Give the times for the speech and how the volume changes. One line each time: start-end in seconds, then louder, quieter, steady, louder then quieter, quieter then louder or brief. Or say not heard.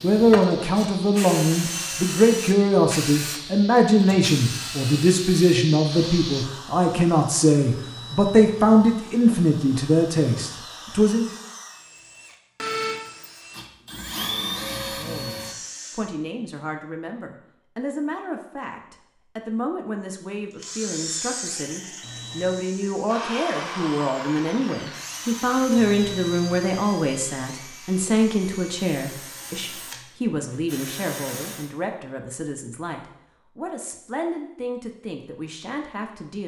0.0-11.3 steady
14.9-36.4 louder then quieter.